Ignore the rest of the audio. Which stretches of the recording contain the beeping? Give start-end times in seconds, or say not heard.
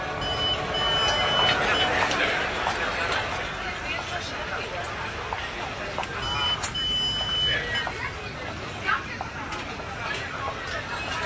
0.2-1.9, 6.2-7.8.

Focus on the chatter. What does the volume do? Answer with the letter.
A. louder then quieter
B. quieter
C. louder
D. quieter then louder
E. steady
B.